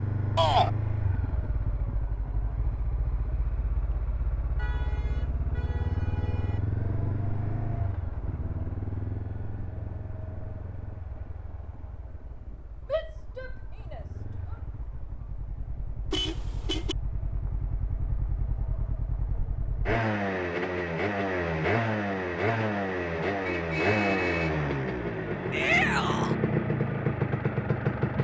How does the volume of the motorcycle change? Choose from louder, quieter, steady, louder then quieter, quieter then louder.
quieter then louder.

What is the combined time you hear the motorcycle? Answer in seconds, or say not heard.
28 s.